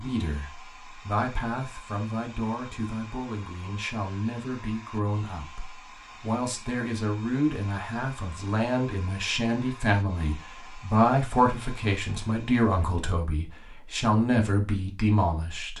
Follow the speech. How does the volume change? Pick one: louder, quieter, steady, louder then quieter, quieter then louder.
louder.